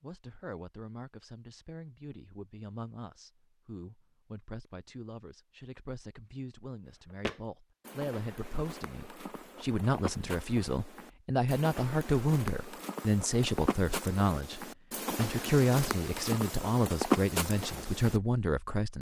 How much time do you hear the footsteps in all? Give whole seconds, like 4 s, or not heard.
11 s.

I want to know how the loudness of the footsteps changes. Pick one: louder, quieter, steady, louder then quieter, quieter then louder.
louder.